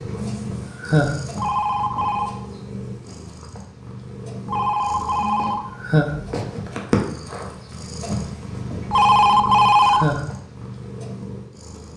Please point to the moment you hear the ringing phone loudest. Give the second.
10 s.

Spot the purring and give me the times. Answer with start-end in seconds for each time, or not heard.
0.0-11.9.